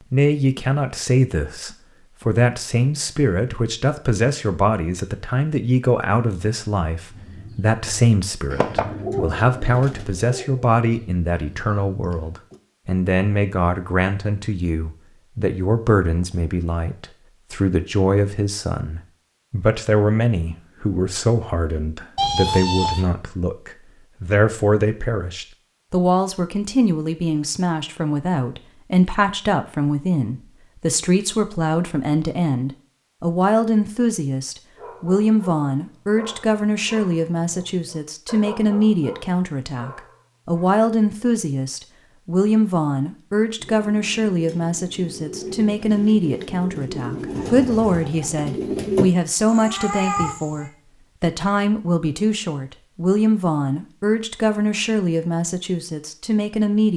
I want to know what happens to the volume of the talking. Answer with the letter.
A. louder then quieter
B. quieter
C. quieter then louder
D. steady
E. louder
D.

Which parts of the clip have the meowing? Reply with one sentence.
The meowing can be heard from 22.1 to 23.1 s and from 49.5 to 50.7 s.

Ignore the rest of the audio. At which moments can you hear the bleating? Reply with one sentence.
You can't hear the bleating here.